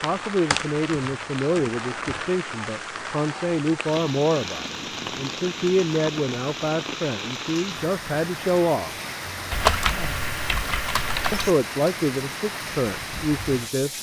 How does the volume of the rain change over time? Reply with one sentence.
The volume of the rain stays about the same.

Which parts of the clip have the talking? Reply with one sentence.
The talking can be heard from 0.0 to 8.9 s and from 11.3 to 13.9 s.